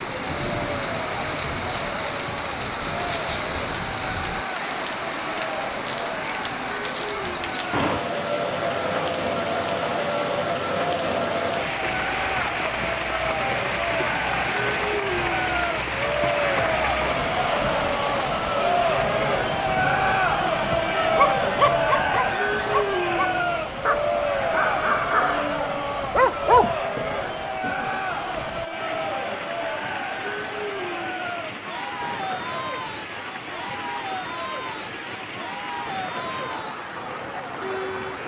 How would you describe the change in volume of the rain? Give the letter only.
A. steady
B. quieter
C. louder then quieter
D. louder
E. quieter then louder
B.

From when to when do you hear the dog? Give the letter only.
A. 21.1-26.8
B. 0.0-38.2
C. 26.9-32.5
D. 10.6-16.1
A.